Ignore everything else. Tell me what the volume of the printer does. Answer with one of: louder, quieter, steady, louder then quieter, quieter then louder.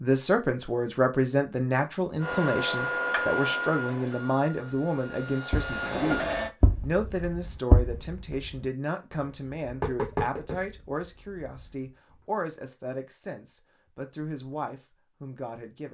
quieter then louder.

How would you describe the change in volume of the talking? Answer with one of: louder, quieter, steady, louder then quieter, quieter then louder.
quieter.